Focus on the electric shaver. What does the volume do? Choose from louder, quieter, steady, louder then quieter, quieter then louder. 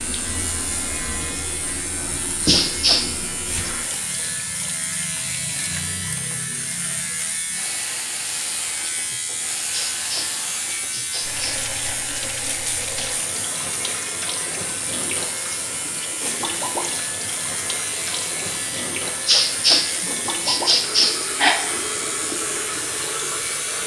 steady.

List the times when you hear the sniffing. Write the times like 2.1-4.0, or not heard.
2.5-3.7, 9.7-12.0, 19.2-21.6.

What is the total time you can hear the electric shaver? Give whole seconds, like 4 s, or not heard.
24 s.